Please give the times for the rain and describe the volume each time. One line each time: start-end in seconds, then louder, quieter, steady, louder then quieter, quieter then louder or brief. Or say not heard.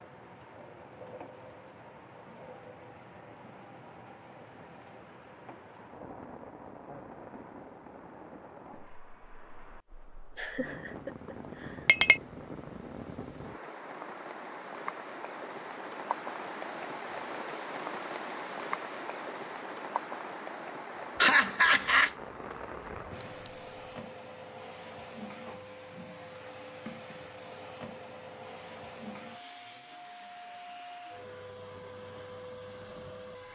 0.0-23.7 louder.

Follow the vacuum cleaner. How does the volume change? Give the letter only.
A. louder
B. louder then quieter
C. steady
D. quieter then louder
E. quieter
C.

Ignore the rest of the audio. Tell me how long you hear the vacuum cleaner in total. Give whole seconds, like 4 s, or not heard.
10 s.